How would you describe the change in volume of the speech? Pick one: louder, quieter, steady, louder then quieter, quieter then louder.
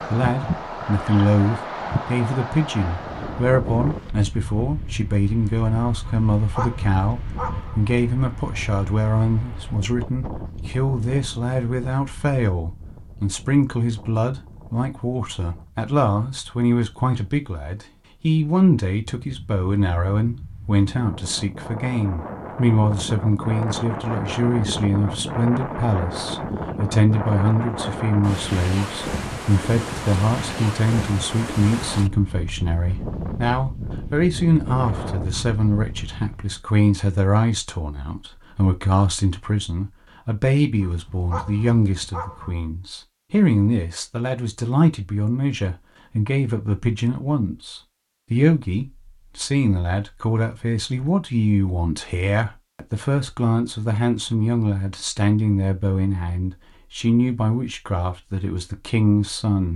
steady.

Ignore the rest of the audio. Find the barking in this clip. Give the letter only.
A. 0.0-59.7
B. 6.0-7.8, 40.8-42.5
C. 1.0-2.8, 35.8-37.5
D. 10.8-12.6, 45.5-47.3
B.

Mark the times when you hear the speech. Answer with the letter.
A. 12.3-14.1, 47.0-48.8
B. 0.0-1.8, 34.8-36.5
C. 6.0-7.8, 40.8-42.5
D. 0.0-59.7
D.